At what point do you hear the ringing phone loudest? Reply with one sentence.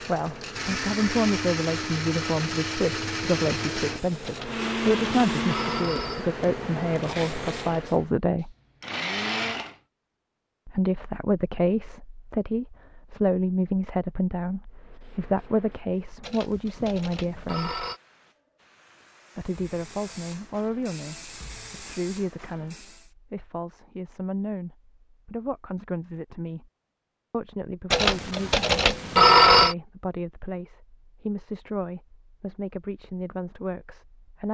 The volume of the ringing phone peaks at 29 seconds.